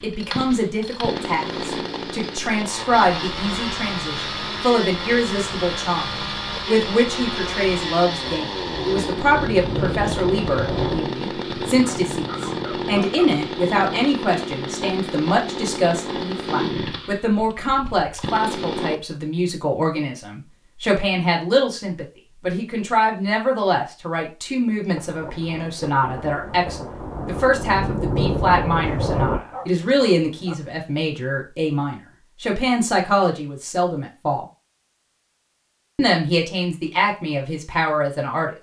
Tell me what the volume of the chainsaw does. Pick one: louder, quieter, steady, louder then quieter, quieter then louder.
steady.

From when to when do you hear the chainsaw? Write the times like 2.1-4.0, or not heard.
0.0-18.9.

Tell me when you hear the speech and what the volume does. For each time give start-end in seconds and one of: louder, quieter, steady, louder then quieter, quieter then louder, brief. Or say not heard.
0.0-34.5 steady
36.0-38.5 brief.